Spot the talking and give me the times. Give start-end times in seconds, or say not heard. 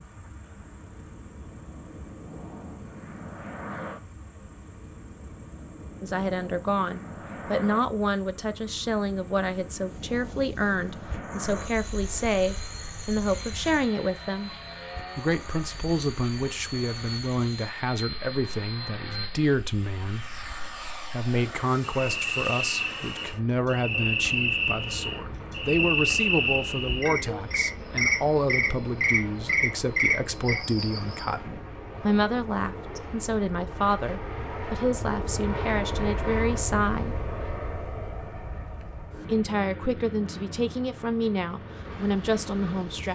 6.0-14.5, 15.2-37.2, 39.2-43.0.